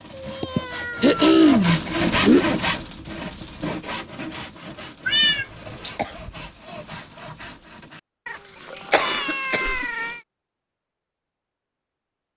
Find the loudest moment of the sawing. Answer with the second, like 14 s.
2 s.